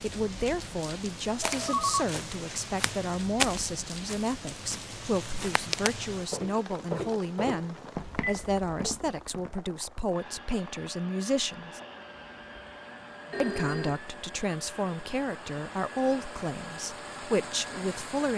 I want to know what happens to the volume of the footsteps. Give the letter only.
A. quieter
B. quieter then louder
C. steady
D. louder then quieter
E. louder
D.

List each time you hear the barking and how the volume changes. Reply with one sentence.
The barking can't be heard in this clip.